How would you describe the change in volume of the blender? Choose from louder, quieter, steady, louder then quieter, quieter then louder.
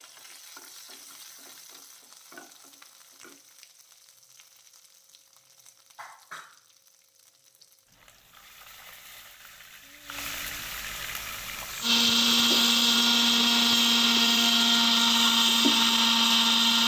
steady.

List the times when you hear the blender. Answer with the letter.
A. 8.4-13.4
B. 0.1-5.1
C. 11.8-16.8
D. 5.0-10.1
C.